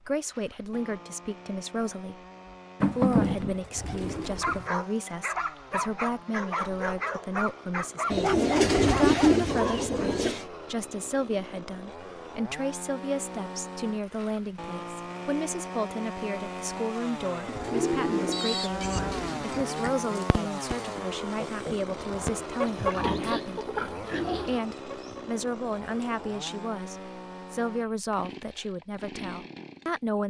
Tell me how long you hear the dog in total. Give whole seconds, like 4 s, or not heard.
6 s.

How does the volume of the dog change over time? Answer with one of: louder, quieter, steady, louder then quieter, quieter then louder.
steady.